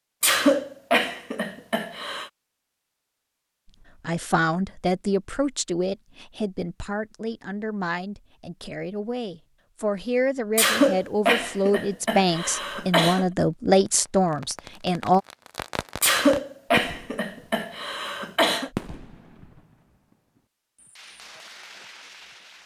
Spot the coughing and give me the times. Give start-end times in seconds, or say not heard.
0.2-2.3, 10.6-13.2, 16.0-18.7.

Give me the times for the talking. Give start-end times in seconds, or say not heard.
4.0-15.2.